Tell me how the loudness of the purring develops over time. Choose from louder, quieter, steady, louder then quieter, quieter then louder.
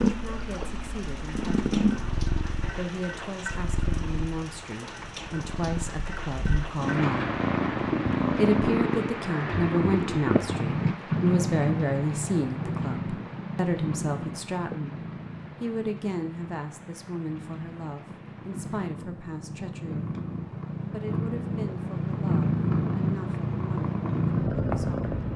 quieter then louder.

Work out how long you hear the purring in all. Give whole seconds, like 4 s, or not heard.
25 s.